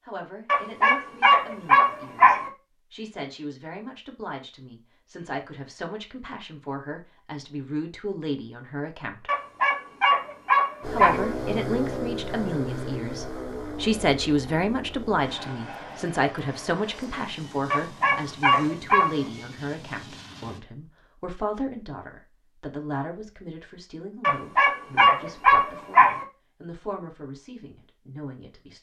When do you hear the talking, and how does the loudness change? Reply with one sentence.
The talking can be heard from 0.1 to 9.3 s, getting louder; and from 10.9 to 28.7 s, getting quieter.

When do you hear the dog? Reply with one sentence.
The dog can be heard from 0.5 to 2.5 s, from 9.2 to 11.2 s, from 17.7 to 19.1 s and from 24.2 to 26.2 s.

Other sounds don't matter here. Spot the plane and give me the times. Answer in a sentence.
The plane can be heard from 10.8 to 20.6 s.